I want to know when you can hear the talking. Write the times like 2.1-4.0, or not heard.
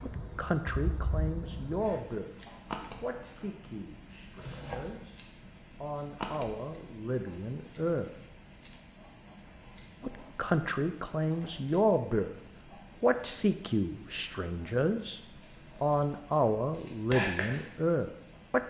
0.0-2.3, 3.0-5.2, 5.8-8.1, 10.0-12.3, 13.0-15.2, 15.8-18.6.